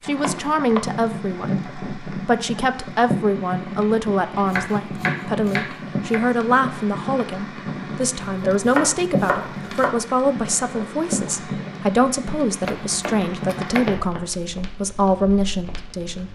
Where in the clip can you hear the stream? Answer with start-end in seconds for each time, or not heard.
not heard.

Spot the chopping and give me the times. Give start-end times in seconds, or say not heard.
0.2-0.8, 4.5-6.3, 8.2-9.9, 12.7-13.8.